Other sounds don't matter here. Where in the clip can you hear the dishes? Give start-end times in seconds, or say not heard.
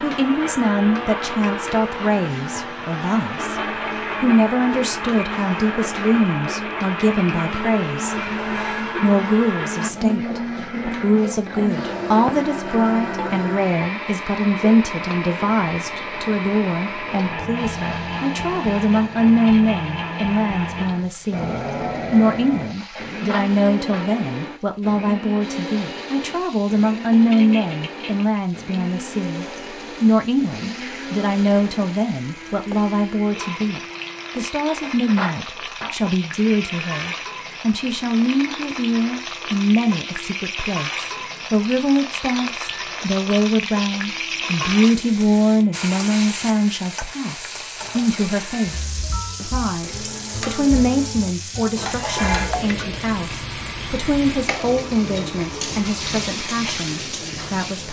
8.1-9.0, 22.8-24.1, 34.6-36.0, 51.8-52.6.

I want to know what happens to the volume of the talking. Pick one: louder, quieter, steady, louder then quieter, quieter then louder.
steady.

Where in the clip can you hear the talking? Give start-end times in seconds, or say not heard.
0.0-3.6, 4.2-8.2, 9.0-57.8.